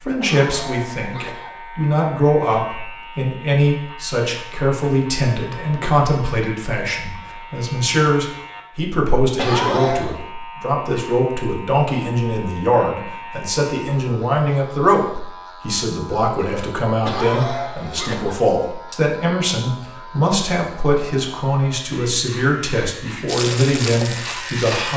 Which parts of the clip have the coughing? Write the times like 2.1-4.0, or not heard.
0.2-1.6, 9.3-10.2, 17.1-18.5.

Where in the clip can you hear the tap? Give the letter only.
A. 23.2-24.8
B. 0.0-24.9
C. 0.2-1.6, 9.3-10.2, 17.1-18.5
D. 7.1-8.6
A.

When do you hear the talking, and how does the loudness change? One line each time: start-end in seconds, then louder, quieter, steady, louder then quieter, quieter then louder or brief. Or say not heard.
0.0-24.9 steady.